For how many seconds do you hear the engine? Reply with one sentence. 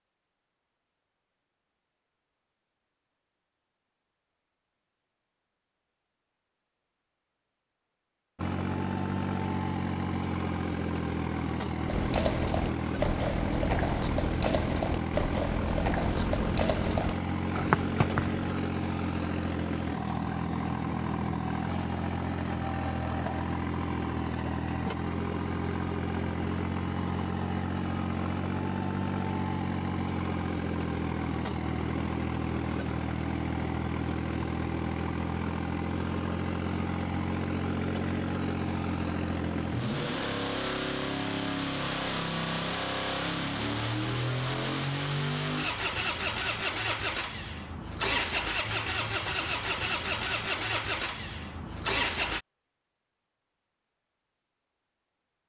You can hear the engine for 44 seconds altogether.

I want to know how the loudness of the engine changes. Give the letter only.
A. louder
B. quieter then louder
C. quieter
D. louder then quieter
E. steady
E.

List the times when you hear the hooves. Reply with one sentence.
You can hear the hooves from 11.8 to 18.6 s.